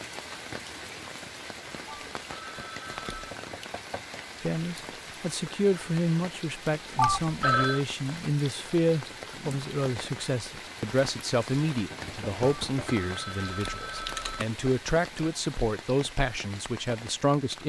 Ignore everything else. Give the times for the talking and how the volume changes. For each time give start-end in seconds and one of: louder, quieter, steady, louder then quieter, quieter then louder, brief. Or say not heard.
4.4-17.6 steady.